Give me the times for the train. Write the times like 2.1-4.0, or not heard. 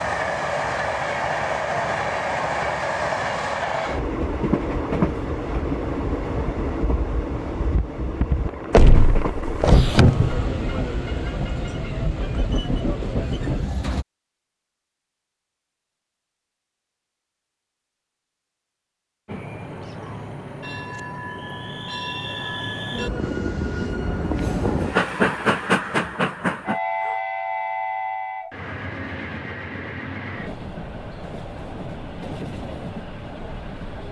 0.0-14.1, 19.2-34.0.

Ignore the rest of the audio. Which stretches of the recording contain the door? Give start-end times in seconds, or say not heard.
8.7-10.3.